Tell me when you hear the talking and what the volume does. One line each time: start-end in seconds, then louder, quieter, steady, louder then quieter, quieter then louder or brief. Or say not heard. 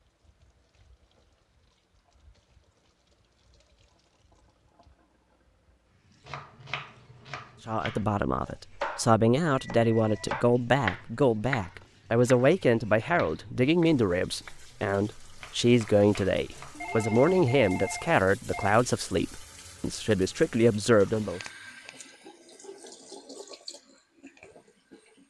7.7-21.4 steady.